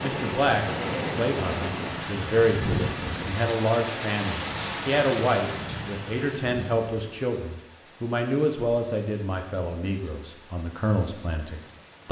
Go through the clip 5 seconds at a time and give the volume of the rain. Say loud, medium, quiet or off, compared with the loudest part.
loud, medium, quiet.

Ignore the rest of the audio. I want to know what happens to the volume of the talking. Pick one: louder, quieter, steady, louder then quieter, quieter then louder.
quieter.